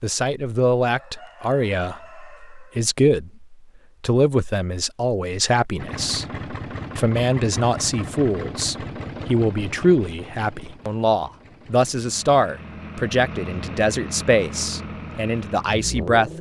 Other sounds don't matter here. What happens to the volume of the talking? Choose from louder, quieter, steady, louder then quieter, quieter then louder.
steady.